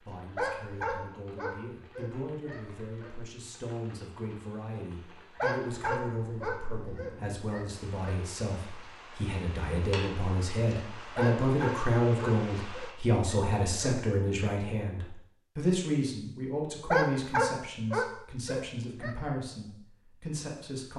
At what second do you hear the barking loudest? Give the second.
17 s.